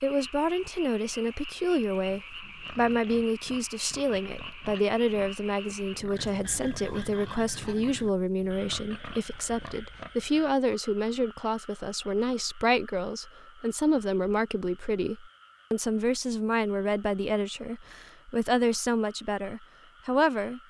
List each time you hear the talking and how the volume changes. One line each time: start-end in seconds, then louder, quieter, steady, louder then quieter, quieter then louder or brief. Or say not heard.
0.0-20.6 steady.